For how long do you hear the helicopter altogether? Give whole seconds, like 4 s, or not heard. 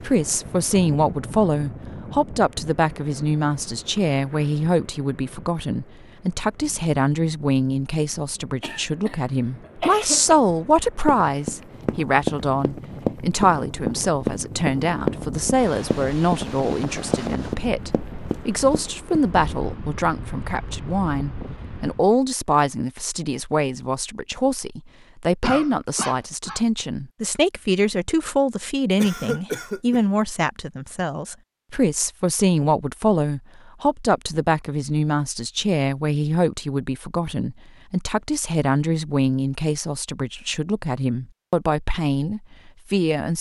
not heard.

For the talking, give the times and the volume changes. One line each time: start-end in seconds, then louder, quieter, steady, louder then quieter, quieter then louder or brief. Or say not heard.
0.0-43.3 steady.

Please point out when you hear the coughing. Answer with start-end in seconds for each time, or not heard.
8.3-10.3, 25.4-26.6, 28.9-30.0.